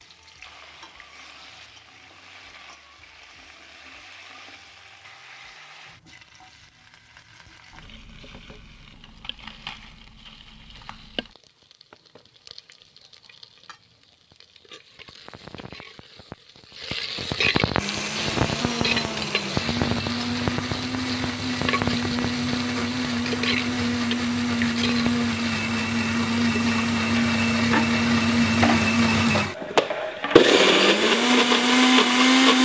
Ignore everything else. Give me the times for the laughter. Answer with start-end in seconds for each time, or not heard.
not heard.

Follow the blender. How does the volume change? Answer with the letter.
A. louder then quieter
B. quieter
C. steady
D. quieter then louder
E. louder
E.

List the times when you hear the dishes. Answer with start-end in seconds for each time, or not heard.
not heard.